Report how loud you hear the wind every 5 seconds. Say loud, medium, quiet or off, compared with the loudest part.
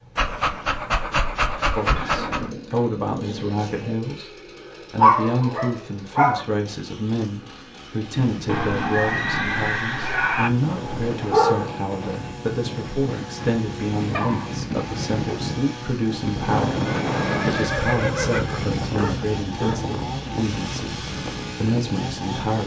off, medium, medium, loud, medium.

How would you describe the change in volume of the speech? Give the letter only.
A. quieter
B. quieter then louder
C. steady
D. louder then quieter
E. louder
C.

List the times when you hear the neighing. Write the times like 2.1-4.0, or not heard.
1.9-4.0, 8.4-10.5, 16.9-18.9.